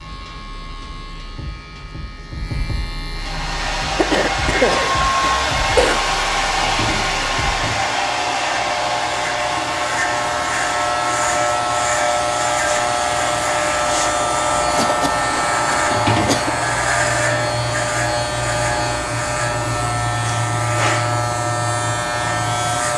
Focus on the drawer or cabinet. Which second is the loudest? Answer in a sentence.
The loudest moment of the drawer or cabinet is at 16 seconds.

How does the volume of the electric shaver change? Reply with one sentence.
The volume of the electric shaver goes up.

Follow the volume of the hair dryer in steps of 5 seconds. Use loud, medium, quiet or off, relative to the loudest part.
loud, loud, medium, medium, off.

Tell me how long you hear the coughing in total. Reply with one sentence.
You can hear the coughing for 4 seconds altogether.